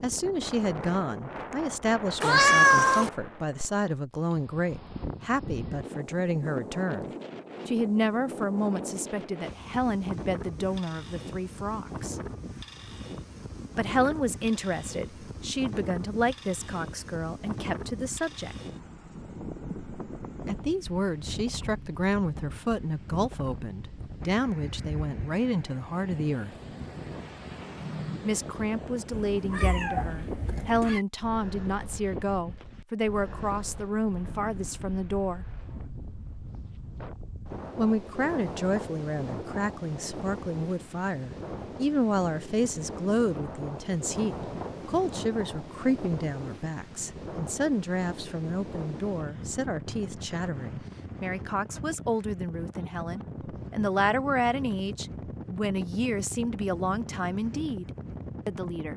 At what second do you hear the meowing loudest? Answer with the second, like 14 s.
3 s.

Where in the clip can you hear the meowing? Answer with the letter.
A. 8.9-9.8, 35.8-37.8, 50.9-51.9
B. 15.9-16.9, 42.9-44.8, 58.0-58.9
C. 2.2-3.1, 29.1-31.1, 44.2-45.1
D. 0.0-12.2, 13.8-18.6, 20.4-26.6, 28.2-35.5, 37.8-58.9
C.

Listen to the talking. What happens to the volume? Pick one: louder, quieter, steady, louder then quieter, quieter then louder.
steady.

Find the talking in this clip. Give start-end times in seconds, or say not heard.
0.0-12.2, 13.8-18.6, 20.4-26.6, 28.2-35.5, 37.8-58.9.